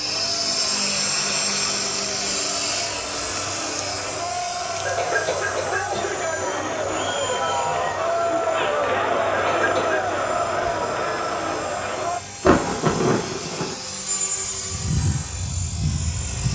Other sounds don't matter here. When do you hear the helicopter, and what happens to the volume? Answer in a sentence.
You can hear the helicopter from 0.0 to 16.5 s, getting quieter then louder.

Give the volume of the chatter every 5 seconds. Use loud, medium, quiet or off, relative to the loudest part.
medium, loud, loud, off.